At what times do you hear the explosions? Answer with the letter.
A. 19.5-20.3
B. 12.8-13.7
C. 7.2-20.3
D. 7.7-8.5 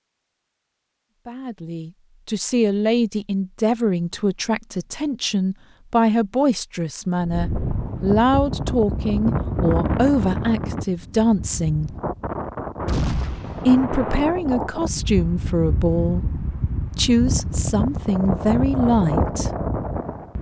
B.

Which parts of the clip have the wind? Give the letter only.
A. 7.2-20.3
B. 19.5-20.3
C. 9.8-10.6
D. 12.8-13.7
A.